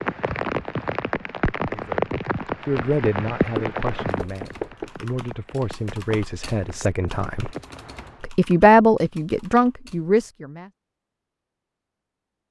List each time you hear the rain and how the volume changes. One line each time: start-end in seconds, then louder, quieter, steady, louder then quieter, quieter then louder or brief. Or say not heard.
0.0-8.3 quieter.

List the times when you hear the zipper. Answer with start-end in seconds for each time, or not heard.
not heard.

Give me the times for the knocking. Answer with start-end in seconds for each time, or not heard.
3.5-4.9.